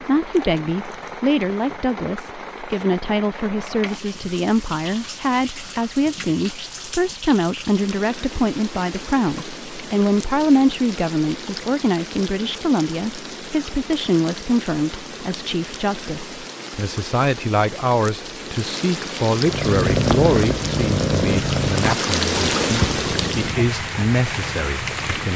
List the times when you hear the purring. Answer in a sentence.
You can hear the purring from 19.3 to 23.6 s.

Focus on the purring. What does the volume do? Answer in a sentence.
The volume of the purring goes down.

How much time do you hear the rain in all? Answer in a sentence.
You can hear the rain for 25 seconds altogether.